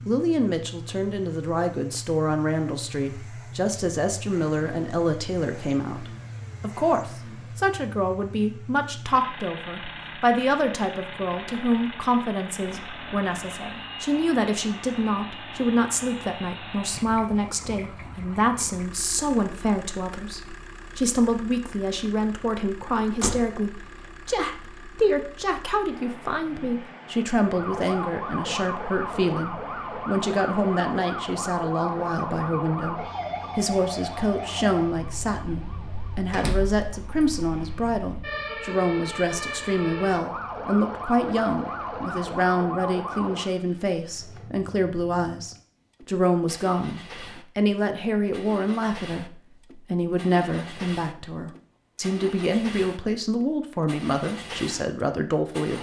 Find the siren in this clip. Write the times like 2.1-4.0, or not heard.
27.4-43.5.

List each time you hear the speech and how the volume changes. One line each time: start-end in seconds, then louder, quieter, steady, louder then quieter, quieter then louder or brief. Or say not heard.
0.1-55.7 steady.